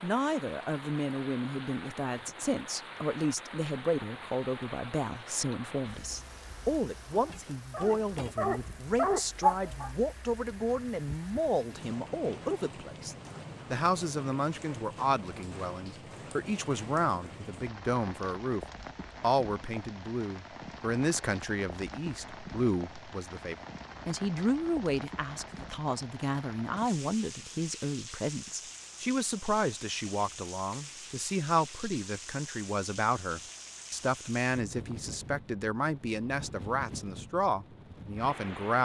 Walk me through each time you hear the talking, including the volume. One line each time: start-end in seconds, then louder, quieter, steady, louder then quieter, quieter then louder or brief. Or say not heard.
0.0-38.8 steady.